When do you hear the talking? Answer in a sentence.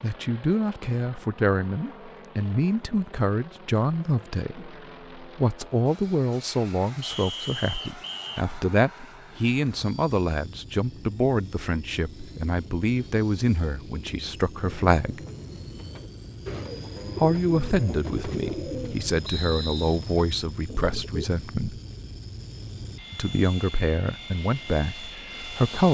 You can hear the talking from 0.0 to 15.2 s, from 17.1 to 21.8 s and from 23.1 to 25.8 s.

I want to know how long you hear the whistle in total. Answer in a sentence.
You can hear the whistle for 2 seconds altogether.